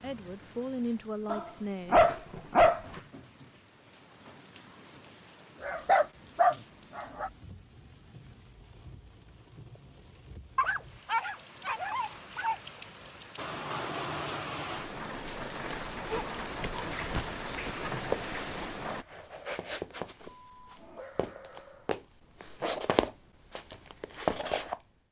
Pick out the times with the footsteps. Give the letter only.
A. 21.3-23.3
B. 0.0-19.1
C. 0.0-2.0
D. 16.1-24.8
D.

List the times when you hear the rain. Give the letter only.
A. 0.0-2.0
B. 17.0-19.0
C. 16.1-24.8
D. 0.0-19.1
D.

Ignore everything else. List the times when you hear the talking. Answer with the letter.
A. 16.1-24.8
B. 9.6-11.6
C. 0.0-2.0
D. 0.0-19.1
C.